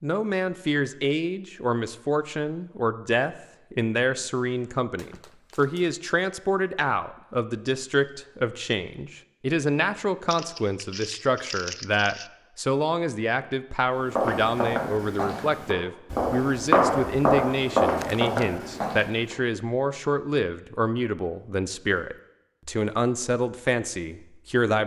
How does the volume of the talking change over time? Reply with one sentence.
The loudness of the talking stays about the same.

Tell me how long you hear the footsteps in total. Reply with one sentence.
You can hear the footsteps for 5 seconds altogether.